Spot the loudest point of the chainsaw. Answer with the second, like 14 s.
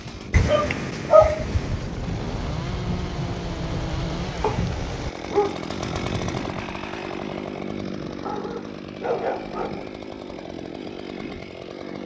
6 s.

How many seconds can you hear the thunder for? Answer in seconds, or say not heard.
4 s.